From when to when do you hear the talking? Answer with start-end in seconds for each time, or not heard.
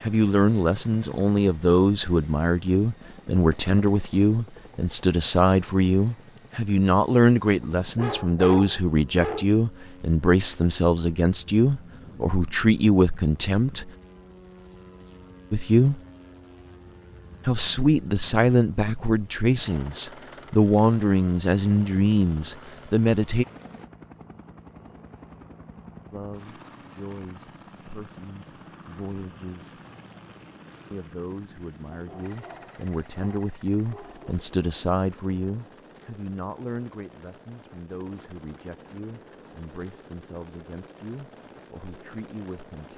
0.0-13.9, 15.5-16.0, 17.4-23.4, 26.1-29.8, 30.9-42.9.